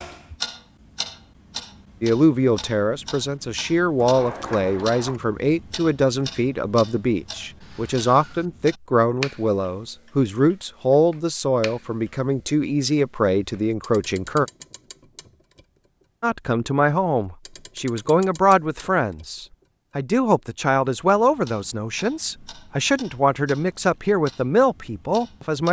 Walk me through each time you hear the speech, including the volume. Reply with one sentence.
The speech can be heard from 2.0 to 14.4 s, at a steady volume; and from 16.2 to 25.6 s, at a steady volume.